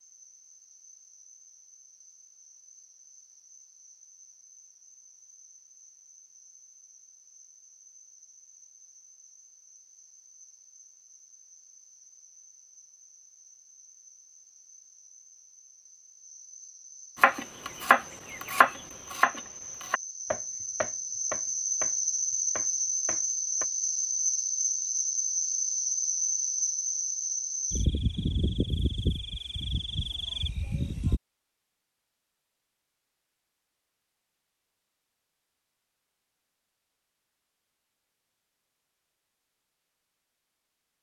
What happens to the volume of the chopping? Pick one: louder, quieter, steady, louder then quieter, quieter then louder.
quieter.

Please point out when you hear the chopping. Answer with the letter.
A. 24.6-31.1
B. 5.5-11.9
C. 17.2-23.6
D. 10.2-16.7
C.